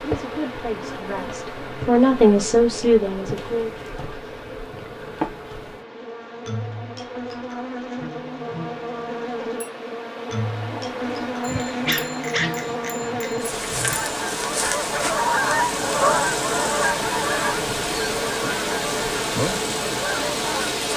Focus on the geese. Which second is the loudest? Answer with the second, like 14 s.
16 s.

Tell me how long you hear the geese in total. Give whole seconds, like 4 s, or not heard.
7 s.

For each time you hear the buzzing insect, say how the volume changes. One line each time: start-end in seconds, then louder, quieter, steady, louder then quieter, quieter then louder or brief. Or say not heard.
0.0-20.9 louder.